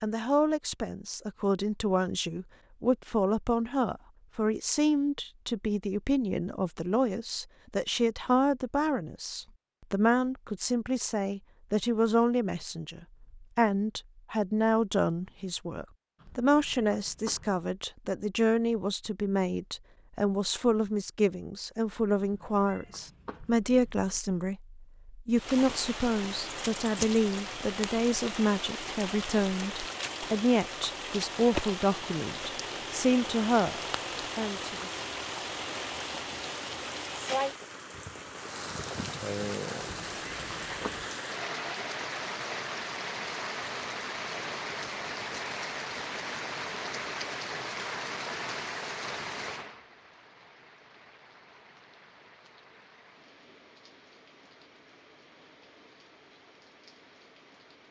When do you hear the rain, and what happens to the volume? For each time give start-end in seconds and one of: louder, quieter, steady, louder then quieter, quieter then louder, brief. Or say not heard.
25.3-57.8 quieter.